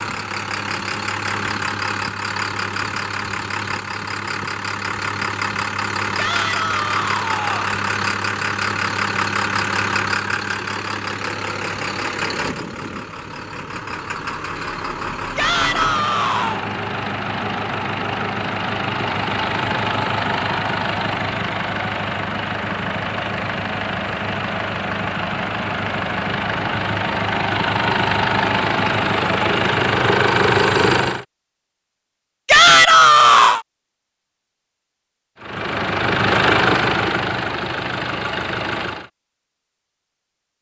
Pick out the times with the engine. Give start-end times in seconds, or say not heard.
0.0-31.2, 35.4-39.1.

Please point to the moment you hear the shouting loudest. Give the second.
33 s.